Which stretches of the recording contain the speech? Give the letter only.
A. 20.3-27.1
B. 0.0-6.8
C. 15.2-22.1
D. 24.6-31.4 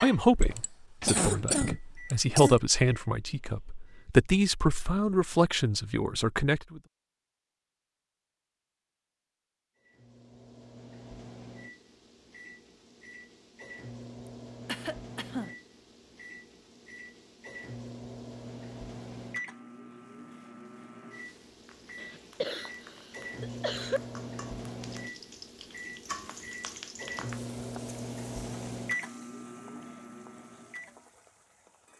B.